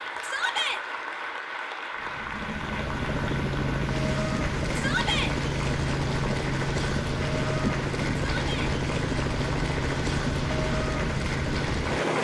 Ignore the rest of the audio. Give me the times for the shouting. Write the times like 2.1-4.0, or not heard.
0.2-0.8, 4.8-5.3, 8.3-8.8.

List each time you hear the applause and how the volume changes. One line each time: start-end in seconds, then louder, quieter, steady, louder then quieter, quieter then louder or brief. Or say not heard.
0.0-12.1 steady.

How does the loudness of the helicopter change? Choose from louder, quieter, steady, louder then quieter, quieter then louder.
steady.